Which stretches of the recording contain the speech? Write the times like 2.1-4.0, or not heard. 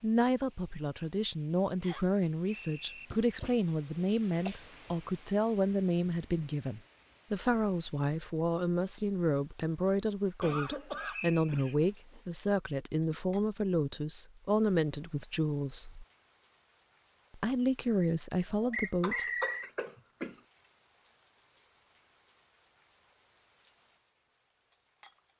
0.0-16.1, 17.3-19.2.